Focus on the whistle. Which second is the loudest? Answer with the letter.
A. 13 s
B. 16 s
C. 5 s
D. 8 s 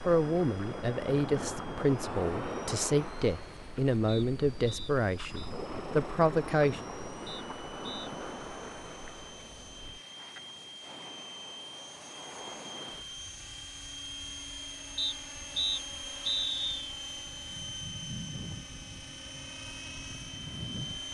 B.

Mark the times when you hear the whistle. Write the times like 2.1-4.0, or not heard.
4.0-5.5, 7.2-8.1, 14.9-16.9.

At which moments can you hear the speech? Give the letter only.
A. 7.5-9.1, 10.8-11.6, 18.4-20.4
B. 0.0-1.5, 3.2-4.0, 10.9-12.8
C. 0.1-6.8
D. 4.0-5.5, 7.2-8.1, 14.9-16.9
C.